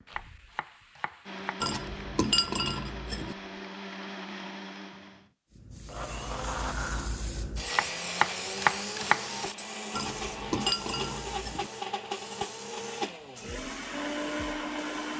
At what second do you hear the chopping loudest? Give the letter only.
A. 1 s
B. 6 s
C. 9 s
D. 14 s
C.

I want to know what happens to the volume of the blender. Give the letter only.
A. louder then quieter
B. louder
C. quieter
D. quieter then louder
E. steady
B.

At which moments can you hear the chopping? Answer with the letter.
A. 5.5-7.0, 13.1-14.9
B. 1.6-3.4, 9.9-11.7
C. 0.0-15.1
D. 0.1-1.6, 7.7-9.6
D.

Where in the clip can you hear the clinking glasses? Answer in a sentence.
The clinking glasses can be heard from 1.6 to 3.4 s and from 9.9 to 11.7 s.